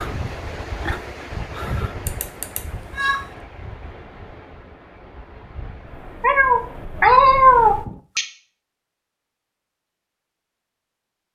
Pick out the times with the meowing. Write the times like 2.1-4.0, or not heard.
2.0-3.2, 6.2-8.2.